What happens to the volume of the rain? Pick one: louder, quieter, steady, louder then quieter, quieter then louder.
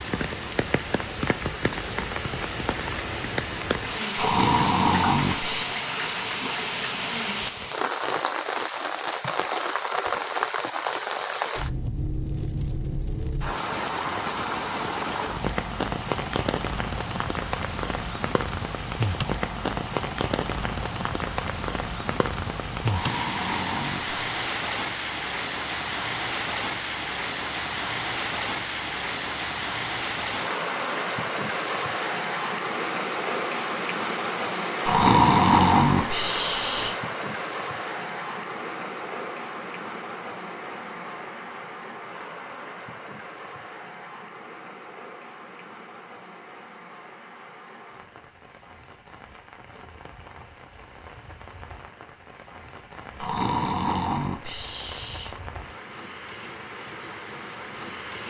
quieter.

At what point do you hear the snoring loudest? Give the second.
35 s.